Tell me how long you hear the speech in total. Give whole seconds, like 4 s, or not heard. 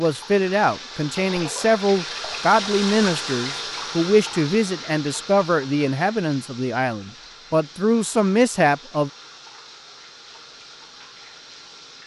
9 s.